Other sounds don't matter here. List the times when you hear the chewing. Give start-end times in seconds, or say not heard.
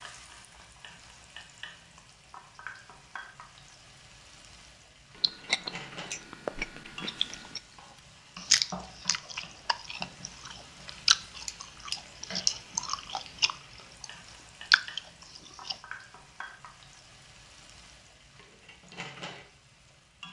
5.2-7.6, 8.3-14.1, 14.7-15.8.